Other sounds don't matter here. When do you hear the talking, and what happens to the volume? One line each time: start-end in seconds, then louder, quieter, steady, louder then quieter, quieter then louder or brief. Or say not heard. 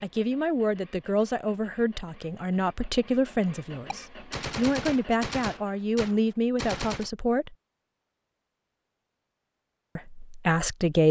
0.0-7.5 steady
9.9-11.0 brief.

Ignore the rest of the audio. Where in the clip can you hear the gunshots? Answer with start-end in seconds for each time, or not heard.
3.9-7.1.